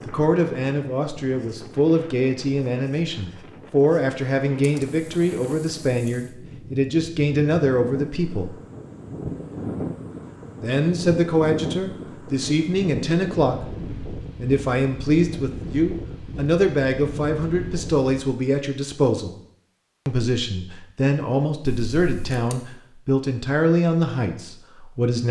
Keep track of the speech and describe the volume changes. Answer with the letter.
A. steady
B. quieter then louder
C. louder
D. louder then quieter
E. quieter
A.